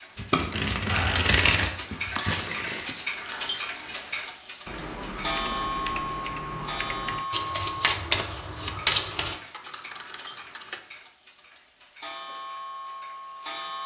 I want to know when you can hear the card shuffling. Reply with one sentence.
The card shuffling can be heard from 0.1 to 3.0 s and from 7.3 to 9.3 s.